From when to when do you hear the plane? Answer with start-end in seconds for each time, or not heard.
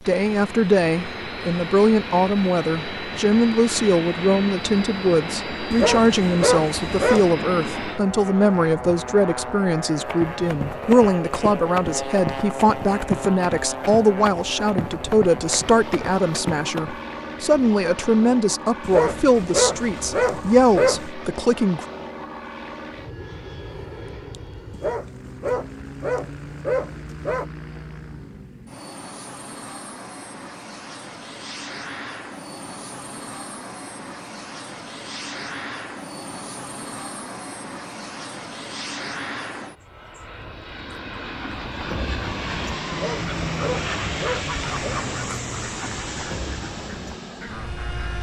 0.0-48.1.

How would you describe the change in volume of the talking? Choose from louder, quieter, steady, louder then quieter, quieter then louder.
steady.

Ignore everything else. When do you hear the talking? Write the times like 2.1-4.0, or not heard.
0.1-21.9.